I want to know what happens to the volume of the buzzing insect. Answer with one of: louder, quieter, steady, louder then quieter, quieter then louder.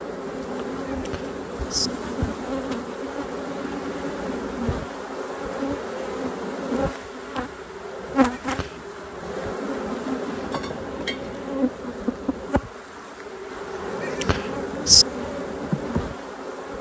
steady.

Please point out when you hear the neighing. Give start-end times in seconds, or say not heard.
0.8-1.9, 8.3-8.8, 14.0-15.1.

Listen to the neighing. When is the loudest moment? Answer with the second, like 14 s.
15 s.